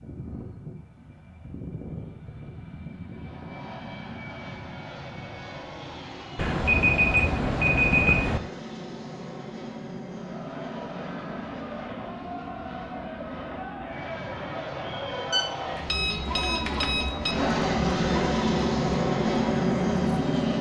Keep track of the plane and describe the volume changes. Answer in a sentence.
The volume of the plane goes up.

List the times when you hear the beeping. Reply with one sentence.
The beeping can be heard from 6.3 to 8.4 s and from 15.3 to 17.4 s.